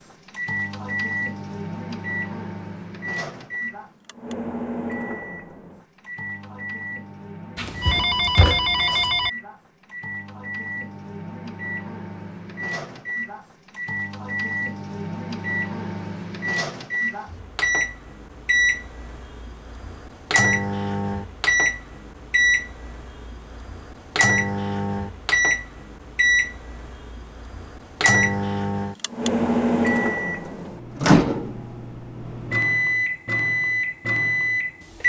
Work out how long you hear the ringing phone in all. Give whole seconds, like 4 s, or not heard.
2 s.